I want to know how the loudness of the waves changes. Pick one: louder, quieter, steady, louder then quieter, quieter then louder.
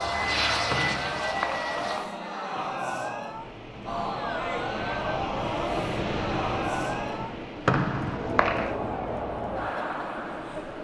louder then quieter.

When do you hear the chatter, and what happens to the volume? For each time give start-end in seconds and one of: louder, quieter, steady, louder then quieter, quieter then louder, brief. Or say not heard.
0.0-10.7 steady.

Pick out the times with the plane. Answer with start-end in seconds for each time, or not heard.
0.0-2.0.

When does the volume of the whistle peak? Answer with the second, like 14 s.
8 s.